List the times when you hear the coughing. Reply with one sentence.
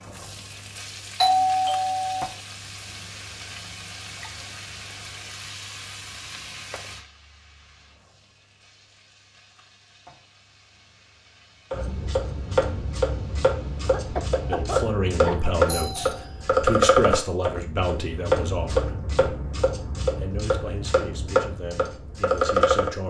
The coughing can be heard from 13.8 to 15.4 s.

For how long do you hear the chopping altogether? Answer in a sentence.
You can hear the chopping for 11 seconds altogether.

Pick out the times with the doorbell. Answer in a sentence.
You can hear the doorbell from 1.2 to 2.3 s and from 15.7 to 16.3 s.